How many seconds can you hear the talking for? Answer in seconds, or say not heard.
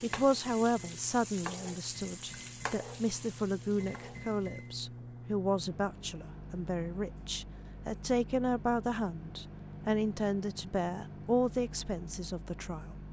13 s.